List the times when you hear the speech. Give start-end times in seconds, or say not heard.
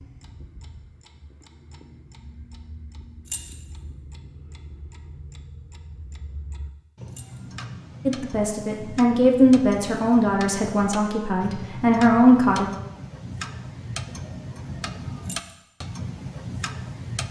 8.1-12.7.